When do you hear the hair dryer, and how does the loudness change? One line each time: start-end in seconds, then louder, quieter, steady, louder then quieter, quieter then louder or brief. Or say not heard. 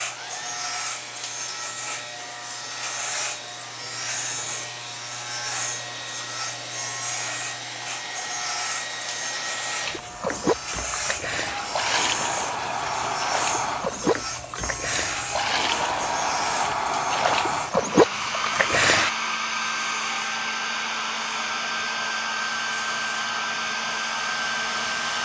0.0-25.2 louder.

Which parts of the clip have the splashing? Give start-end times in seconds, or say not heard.
9.8-19.1.